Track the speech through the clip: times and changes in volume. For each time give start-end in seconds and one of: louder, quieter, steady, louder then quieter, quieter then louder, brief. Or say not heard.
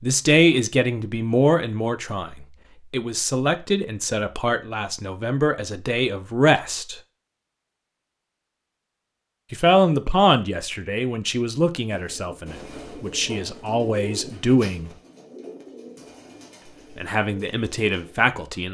0.0-7.0 quieter then louder
9.5-14.9 quieter then louder
16.9-18.6 brief.